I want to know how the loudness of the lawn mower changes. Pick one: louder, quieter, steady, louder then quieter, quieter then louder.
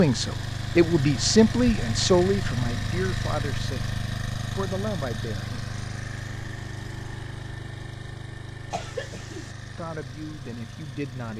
quieter.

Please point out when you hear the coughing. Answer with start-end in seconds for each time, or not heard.
8.7-9.6.